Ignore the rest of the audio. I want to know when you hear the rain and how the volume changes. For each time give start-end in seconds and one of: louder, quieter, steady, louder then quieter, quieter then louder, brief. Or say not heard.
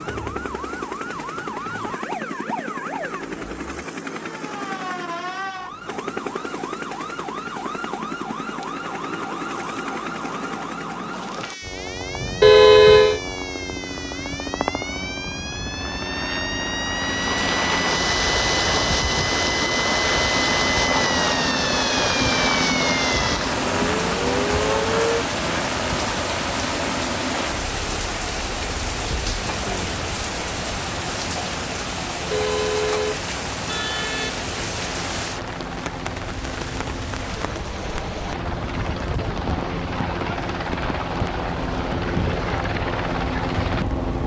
16.9-44.2 quieter.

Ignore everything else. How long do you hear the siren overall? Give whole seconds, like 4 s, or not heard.
25 s.